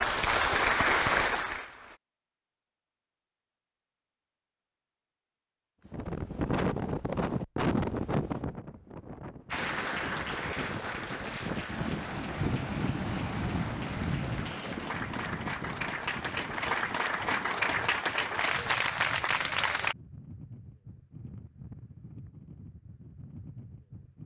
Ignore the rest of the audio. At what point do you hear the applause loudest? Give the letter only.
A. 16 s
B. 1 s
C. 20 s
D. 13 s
B.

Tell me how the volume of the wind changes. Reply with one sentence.
The volume of the wind goes down.